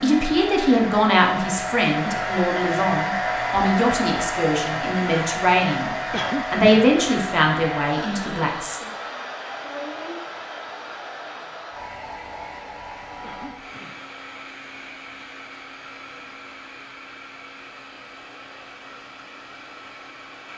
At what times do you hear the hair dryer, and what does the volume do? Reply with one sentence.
The hair dryer can be heard from 0.0 to 20.5 s, getting quieter.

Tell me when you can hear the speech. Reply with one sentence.
You can hear the speech from 0.0 to 8.8 s.